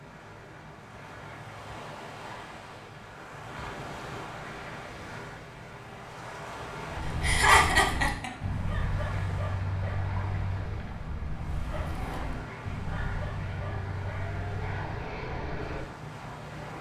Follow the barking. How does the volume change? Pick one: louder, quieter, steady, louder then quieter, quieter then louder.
quieter.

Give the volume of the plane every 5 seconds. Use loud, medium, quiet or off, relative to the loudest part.
medium, medium, loud, loud.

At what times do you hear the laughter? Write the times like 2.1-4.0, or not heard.
7.2-8.3.